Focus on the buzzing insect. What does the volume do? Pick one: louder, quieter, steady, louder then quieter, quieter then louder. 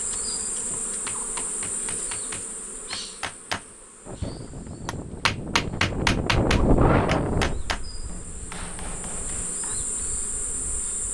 quieter then louder.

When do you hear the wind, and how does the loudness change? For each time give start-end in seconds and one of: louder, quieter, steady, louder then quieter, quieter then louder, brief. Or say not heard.
4.0-11.0 louder then quieter.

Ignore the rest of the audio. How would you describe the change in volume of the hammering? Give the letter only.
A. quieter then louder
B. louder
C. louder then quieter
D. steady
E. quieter
C.